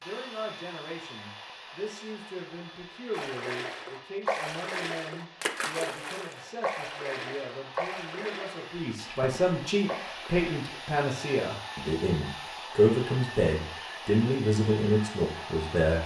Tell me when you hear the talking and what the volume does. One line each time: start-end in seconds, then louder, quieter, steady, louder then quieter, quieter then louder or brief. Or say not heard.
0.0-16.0 louder.